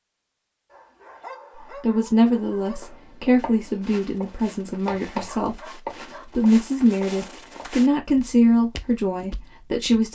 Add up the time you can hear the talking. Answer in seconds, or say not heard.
8 s.